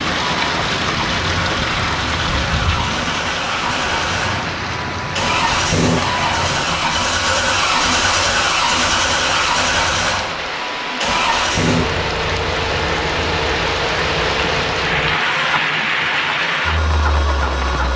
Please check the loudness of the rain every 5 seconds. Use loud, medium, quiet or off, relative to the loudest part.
loud, medium, loud, loud.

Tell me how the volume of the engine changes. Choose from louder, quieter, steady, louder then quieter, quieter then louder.
louder then quieter.